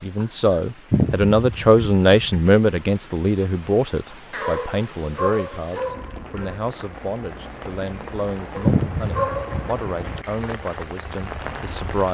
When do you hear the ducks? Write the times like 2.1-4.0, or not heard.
0.9-2.5, 8.7-10.2.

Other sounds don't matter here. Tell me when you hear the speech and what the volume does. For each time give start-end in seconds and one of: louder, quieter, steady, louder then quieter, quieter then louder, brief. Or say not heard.
0.0-12.0 quieter.